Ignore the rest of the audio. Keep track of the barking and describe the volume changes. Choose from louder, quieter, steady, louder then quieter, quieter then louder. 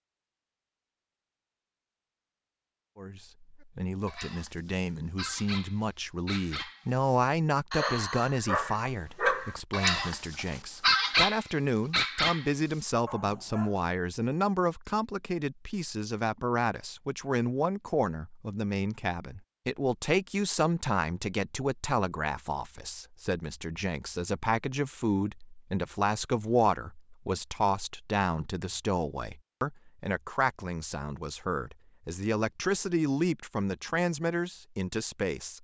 louder then quieter.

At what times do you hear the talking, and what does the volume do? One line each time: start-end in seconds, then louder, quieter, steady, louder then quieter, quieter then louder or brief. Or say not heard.
3.0-35.5 steady.